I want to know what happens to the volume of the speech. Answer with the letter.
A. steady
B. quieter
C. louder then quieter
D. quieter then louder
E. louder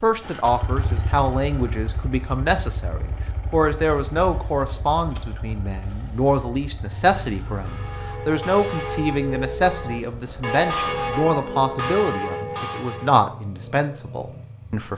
A.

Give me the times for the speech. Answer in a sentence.
The speech can be heard from 0.0 to 14.9 s.